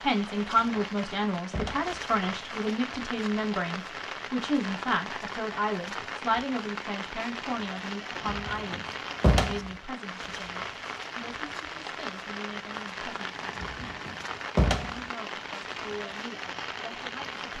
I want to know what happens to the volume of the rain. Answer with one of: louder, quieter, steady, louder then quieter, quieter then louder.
steady.